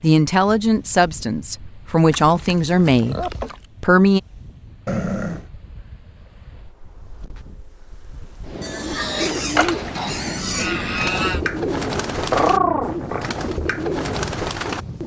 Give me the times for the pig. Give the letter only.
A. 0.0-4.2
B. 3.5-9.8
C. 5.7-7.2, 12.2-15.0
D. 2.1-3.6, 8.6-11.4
D.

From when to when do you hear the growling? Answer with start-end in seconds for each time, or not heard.
4.8-5.5, 12.3-13.2.